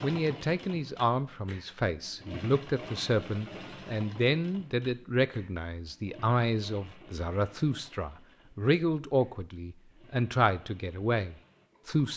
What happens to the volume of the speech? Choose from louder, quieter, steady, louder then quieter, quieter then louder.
steady.